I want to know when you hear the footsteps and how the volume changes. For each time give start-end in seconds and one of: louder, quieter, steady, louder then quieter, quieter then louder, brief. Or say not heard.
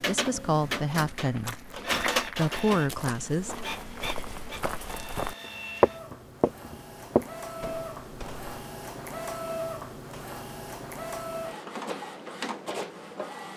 0.7-8.5 louder then quieter.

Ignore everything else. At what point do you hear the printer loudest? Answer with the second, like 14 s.
2 s.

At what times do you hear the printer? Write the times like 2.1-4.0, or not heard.
0.0-13.5.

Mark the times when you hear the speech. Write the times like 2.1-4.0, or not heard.
0.1-1.6, 2.4-3.6.